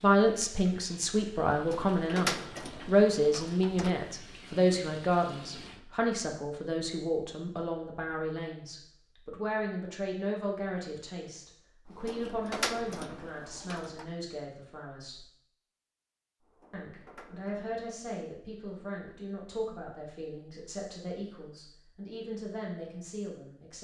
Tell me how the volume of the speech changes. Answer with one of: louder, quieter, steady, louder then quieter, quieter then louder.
quieter.